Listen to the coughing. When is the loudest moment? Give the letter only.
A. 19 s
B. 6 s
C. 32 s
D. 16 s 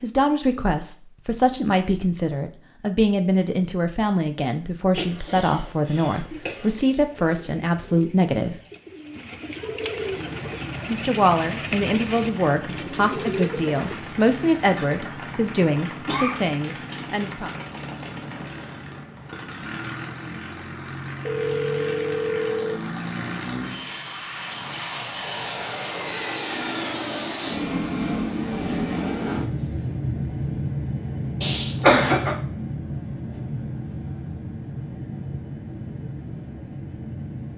C.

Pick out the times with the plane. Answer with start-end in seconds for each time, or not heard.
9.9-37.5.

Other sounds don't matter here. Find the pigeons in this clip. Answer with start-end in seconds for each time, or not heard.
6.3-14.1.